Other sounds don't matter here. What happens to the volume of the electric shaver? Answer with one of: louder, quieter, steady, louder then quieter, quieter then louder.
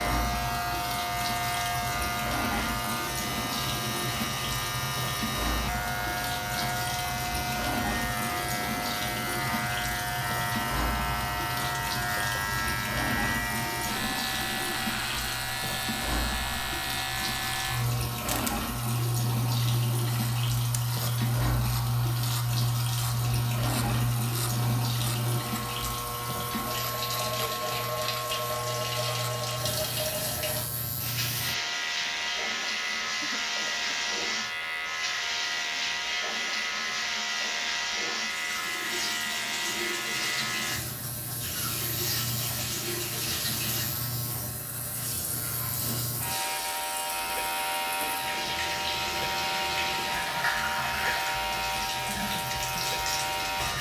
steady.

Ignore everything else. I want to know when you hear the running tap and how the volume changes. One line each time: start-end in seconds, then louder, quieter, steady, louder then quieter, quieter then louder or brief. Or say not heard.
0.0-53.7 steady.